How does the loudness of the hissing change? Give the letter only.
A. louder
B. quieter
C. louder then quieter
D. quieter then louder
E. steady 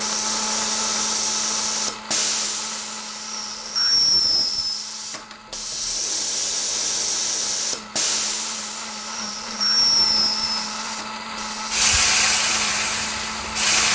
E.